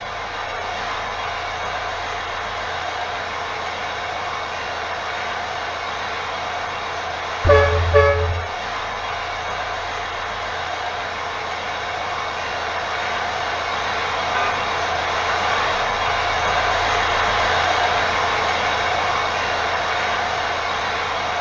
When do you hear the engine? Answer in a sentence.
You can hear the engine from 0.0 to 21.3 s.